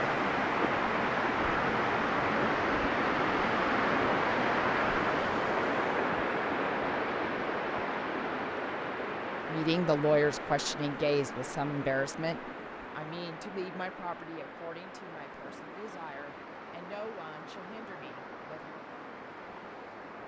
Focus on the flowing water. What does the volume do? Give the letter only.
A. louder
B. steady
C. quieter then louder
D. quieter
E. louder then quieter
D.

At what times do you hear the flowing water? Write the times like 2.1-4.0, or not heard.
0.0-20.2.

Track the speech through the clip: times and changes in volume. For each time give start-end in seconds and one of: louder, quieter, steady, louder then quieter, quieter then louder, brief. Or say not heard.
9.4-18.8 quieter.